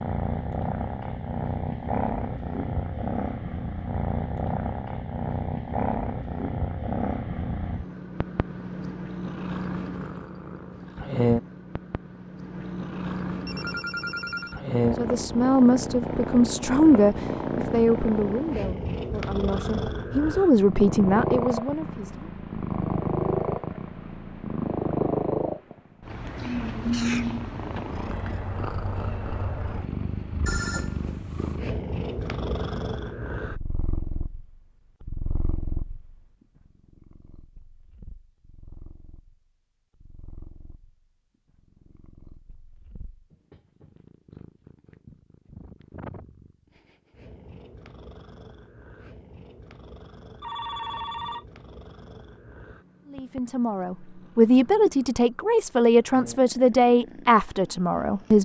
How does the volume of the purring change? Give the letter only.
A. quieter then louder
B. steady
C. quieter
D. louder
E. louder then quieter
C.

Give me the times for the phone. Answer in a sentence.
You can hear the phone from 13.4 to 14.6 s, from 30.4 to 31.5 s and from 50.4 to 51.5 s.